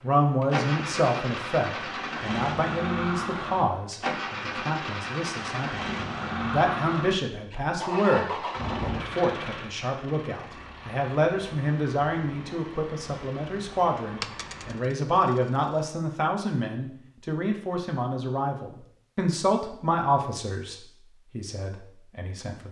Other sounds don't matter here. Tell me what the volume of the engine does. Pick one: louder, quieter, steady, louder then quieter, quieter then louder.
quieter.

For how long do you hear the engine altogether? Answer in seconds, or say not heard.
15 s.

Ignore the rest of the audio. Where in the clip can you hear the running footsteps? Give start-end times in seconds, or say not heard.
not heard.